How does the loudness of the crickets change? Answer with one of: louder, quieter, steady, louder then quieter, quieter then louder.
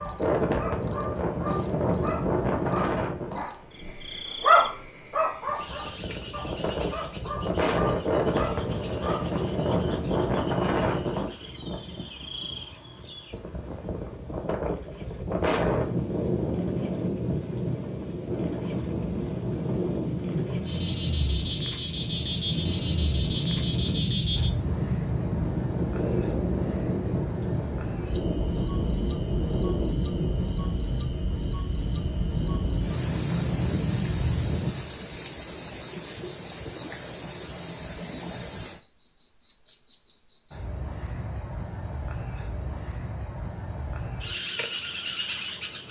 louder.